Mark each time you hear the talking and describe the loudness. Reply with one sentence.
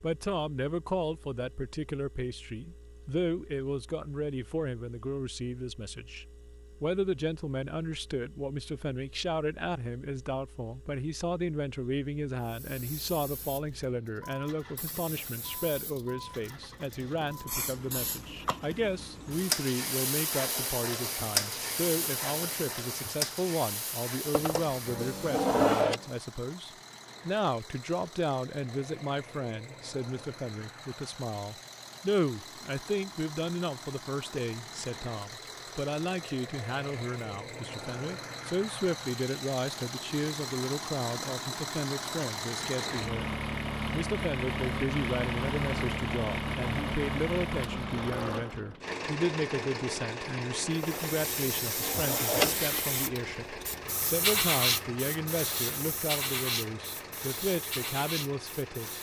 The talking can be heard from 0.0 to 43.3 s, at a steady volume; and from 43.9 to 58.9 s, at a steady volume.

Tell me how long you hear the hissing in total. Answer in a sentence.
The hissing can be heard for 22 seconds in total.